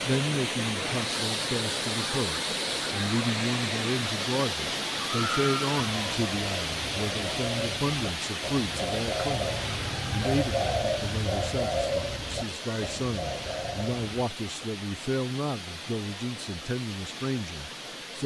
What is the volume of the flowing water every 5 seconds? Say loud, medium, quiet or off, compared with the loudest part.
loud, loud, medium, medium.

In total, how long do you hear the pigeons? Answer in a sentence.
The pigeons can be heard for 8 seconds in total.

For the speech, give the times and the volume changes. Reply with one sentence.
You can hear the speech from 0.1 to 18.2 s, at a steady volume.